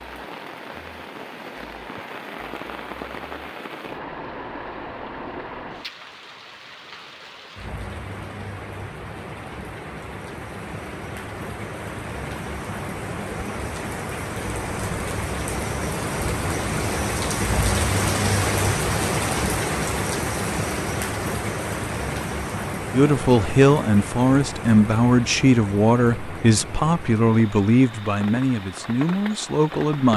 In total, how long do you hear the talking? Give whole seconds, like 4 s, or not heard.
7 s.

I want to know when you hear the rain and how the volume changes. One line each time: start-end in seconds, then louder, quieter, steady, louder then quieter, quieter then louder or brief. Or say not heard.
0.0-30.1 louder then quieter.